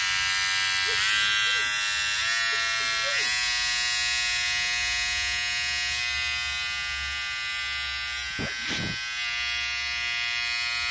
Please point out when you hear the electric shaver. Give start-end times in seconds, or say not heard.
0.0-10.8.